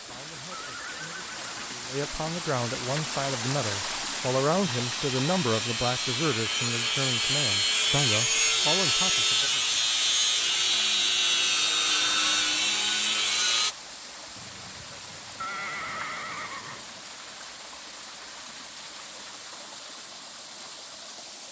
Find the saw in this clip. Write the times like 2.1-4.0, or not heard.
4.6-13.8.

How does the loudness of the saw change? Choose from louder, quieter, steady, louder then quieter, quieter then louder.
louder.